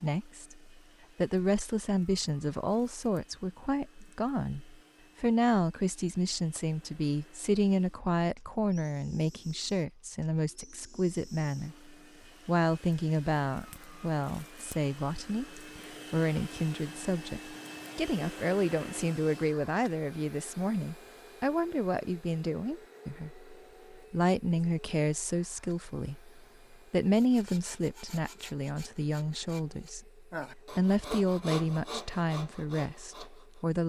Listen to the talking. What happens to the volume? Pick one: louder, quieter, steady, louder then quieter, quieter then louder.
steady.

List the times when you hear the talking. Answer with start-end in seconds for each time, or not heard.
0.0-33.8.